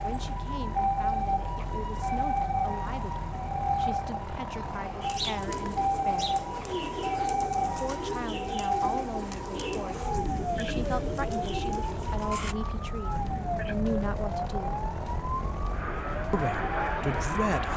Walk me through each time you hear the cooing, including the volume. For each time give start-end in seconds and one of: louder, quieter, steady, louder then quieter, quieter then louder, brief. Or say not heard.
5.0-12.6 steady.